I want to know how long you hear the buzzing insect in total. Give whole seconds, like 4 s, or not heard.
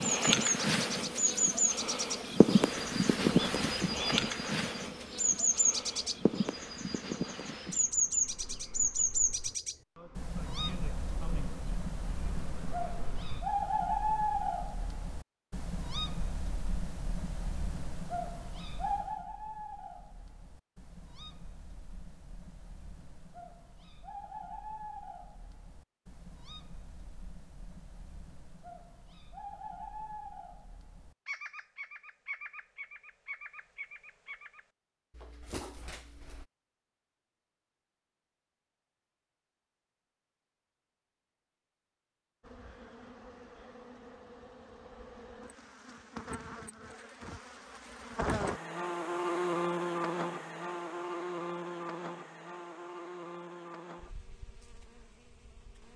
27 s.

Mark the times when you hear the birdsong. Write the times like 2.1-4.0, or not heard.
0.0-36.5.